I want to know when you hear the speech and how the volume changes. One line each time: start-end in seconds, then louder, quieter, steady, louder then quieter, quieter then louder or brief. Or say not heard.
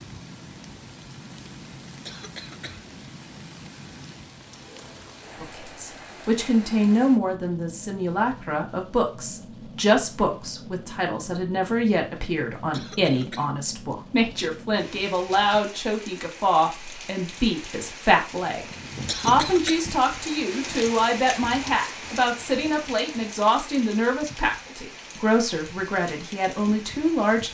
5.4-27.4 steady.